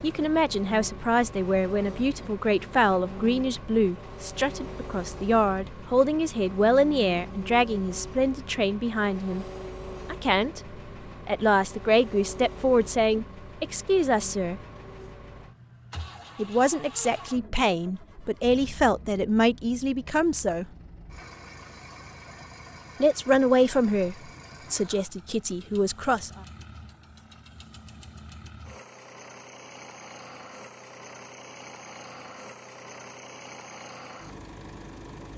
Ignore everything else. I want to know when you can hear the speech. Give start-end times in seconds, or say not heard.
0.0-9.4, 10.1-14.6, 16.4-20.8, 23.0-26.3.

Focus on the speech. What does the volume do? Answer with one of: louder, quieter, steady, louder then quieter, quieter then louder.
steady.